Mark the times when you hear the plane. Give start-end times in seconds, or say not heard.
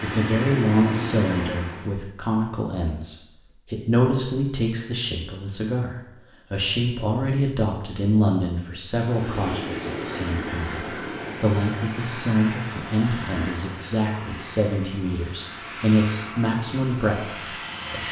0.0-1.9, 8.9-18.0.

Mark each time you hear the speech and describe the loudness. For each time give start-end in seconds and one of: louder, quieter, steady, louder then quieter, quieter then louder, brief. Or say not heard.
0.0-18.0 steady.